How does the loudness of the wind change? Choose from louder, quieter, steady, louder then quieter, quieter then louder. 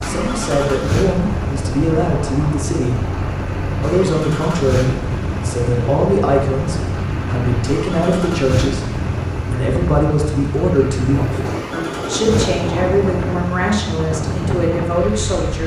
steady.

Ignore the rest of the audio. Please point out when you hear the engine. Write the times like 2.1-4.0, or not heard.
0.0-15.6.